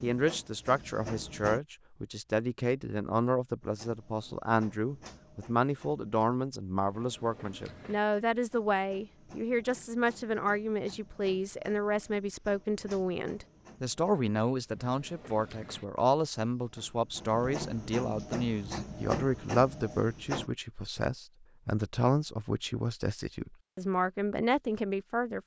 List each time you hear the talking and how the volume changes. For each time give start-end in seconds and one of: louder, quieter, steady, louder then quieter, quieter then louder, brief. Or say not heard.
0.0-25.4 steady.